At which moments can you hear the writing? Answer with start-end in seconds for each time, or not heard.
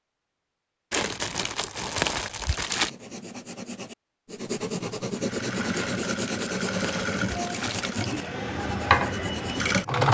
2.5-9.8.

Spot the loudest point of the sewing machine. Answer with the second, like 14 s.
10 s.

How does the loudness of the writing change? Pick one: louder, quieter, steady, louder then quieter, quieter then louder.
louder then quieter.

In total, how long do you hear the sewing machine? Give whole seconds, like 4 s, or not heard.
5 s.